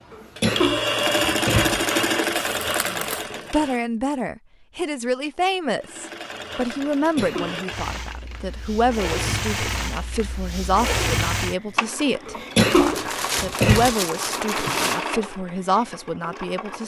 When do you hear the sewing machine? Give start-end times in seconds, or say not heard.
0.1-3.8, 5.8-16.8.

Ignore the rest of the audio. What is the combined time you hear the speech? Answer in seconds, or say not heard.
14 s.